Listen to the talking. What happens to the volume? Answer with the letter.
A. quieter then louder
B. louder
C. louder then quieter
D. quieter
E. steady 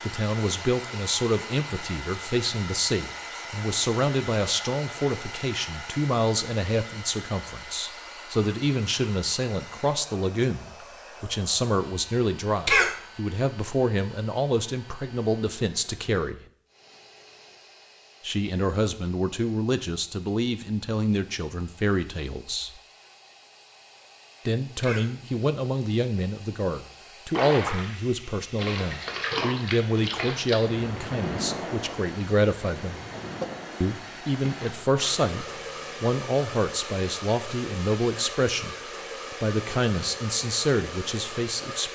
E.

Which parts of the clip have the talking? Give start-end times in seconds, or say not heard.
0.0-16.4, 18.2-22.8, 24.4-33.0, 33.8-41.8.